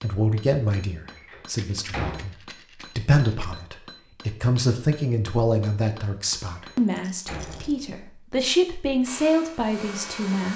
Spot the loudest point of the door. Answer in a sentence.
The volume of the door peaks at 2 seconds.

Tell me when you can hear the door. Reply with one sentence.
You can hear the door from 1.1 to 2.2 s and from 6.5 to 8.0 s.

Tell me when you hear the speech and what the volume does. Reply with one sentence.
You can hear the speech briefly from 0.0 to 2.4 s; and from 3.0 to 10.5 s, at a steady volume.